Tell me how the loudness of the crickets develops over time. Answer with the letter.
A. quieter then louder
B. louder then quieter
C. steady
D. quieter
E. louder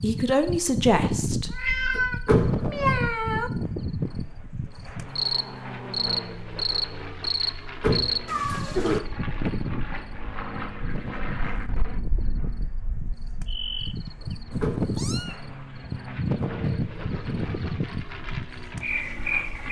C.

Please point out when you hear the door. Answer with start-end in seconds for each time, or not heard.
2.2-3.0, 7.8-8.4, 14.6-15.3.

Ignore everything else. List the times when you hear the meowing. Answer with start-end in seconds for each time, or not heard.
1.5-3.5, 8.2-9.0, 14.5-15.4.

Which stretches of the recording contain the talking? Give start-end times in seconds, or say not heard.
0.0-2.0.